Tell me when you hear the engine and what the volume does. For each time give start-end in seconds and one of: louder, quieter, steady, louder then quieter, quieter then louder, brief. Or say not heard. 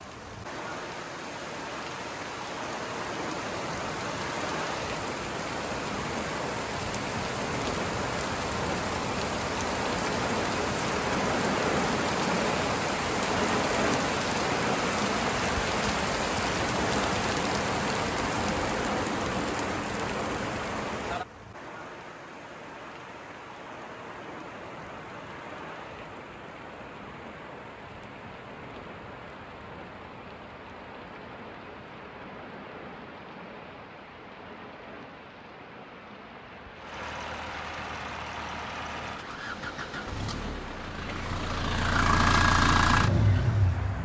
36.8-44.0 louder.